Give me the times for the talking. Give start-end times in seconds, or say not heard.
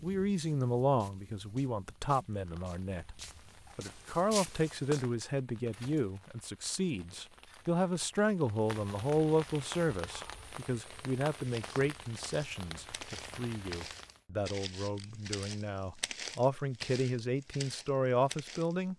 0.0-18.9.